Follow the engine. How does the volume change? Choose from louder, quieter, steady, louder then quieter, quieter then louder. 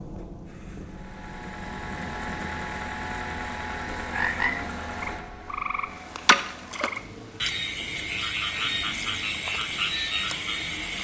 quieter.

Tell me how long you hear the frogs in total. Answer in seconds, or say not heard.
7 s.